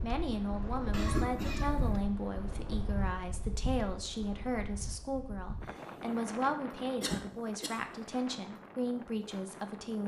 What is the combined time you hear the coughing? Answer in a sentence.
You can hear the coughing for 2 seconds altogether.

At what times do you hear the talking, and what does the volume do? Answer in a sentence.
You can hear the talking from 0.0 to 10.0 s, at a steady volume.